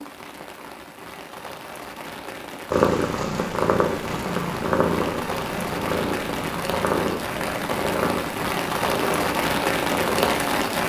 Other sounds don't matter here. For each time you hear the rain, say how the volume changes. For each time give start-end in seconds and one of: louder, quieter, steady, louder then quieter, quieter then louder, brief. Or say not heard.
0.0-10.8 louder.